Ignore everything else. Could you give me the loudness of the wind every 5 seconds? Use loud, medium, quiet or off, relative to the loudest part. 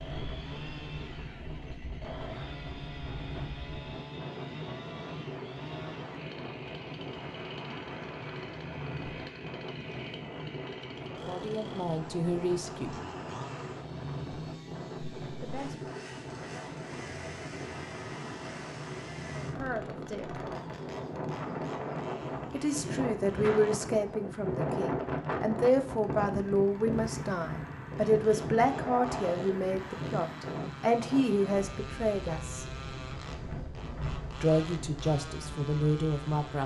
medium, medium, medium, medium, loud, loud, medium, medium.